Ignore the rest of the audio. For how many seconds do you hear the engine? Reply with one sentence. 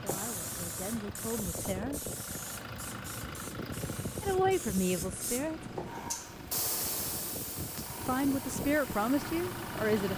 You can hear the engine for 10 seconds altogether.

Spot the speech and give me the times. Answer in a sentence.
You can hear the speech from 0.0 to 2.0 s, from 4.2 to 5.7 s and from 8.1 to 10.1 s.